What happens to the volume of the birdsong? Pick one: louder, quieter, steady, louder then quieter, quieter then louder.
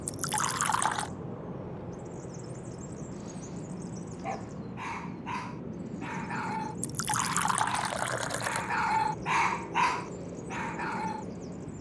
steady.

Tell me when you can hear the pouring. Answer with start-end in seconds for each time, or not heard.
0.1-1.1, 6.8-8.8.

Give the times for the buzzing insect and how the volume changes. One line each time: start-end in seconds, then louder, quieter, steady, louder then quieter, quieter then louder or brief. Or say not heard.
not heard.